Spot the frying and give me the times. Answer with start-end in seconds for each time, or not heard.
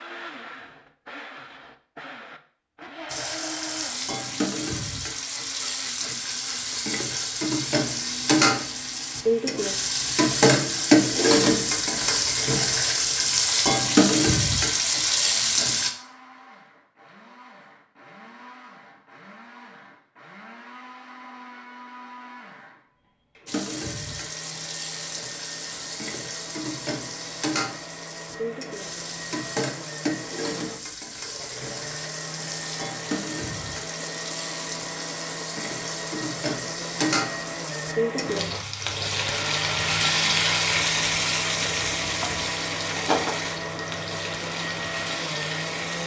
3.0-15.9, 23.4-46.0.